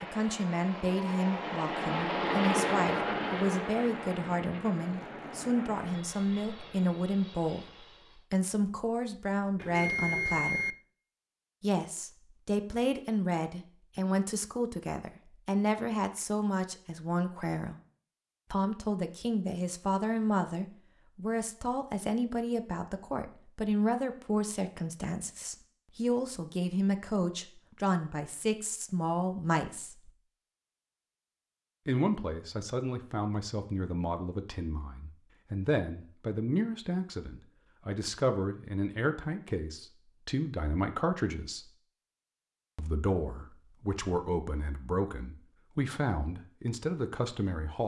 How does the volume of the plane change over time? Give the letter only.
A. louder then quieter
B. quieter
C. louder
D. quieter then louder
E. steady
A.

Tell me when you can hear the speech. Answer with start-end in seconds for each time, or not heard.
0.0-10.8, 11.6-17.8, 18.5-30.1, 31.9-41.8, 42.8-47.8.